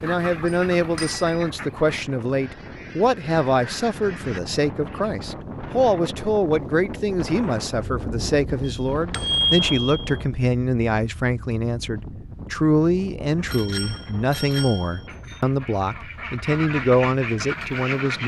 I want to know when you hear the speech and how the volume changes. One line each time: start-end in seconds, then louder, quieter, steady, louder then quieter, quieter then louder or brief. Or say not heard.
0.0-18.2 steady.